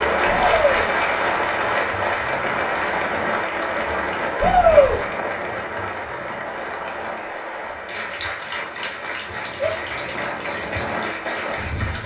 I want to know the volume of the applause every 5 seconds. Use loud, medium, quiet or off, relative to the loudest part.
loud, medium, medium.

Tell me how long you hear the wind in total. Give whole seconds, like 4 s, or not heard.
12 s.